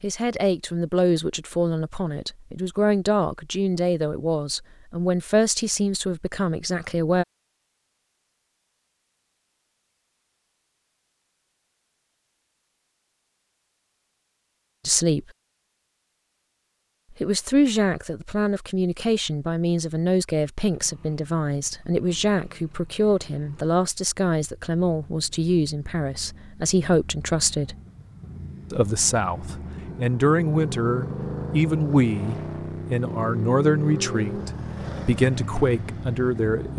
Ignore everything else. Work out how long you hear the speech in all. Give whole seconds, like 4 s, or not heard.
26 s.